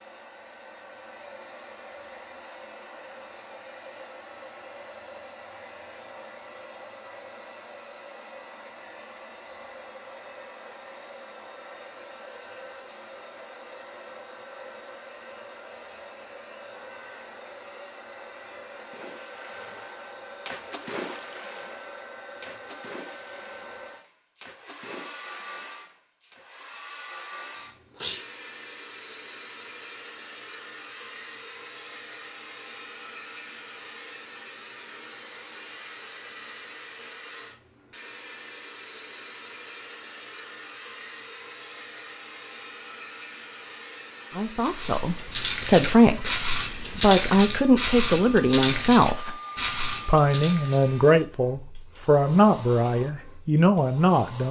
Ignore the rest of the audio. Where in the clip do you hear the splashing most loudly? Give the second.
21 s.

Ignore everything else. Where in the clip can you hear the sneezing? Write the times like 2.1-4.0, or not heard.
27.5-28.2.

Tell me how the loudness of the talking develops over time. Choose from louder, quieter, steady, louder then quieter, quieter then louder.
steady.